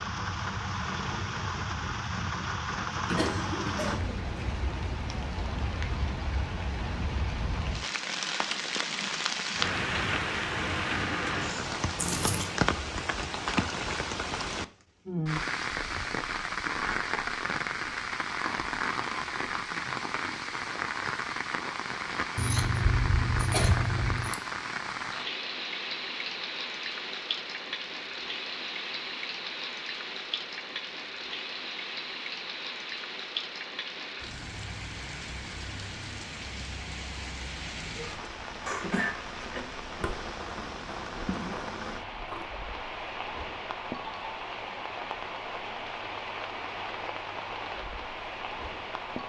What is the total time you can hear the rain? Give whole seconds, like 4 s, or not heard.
49 s.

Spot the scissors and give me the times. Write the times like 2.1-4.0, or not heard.
11.9-12.6, 22.4-24.4, 40.0-42.5.